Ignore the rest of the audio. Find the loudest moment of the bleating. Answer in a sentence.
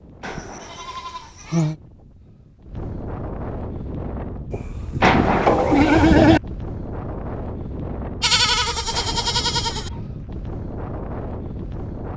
The volume of the bleating peaks at 6 seconds.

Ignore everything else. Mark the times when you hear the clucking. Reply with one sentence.
You can hear the clucking from 0.2 to 1.4 s, from 5.0 to 6.0 s and from 8.9 to 10.1 s.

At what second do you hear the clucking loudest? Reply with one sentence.
The volume of the clucking peaks at 5 seconds.